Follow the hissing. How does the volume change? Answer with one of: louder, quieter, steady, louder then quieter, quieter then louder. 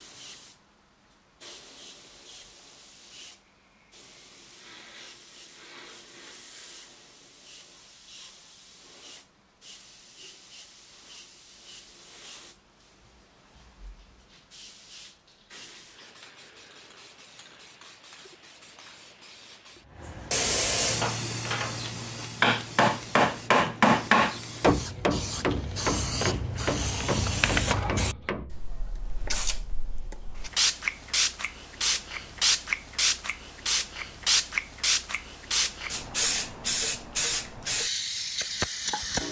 louder.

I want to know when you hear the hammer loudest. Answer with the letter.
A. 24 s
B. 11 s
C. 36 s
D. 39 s
A.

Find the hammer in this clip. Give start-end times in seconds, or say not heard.
20.9-28.6.